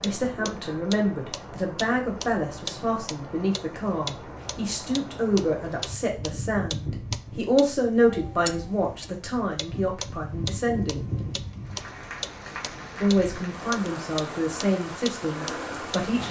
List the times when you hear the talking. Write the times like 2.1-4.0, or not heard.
0.0-11.1, 13.0-16.2.